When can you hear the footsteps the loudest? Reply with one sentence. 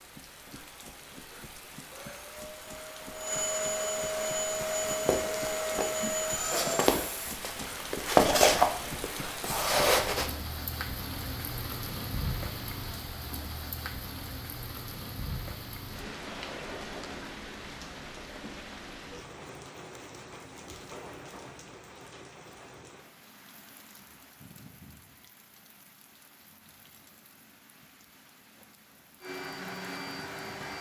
The volume of the footsteps peaks at 8 seconds.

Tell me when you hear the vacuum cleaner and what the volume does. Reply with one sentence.
The vacuum cleaner can be heard from 1.9 to 7.4 s, getting louder; and briefly from 29.2 to 30.7 s.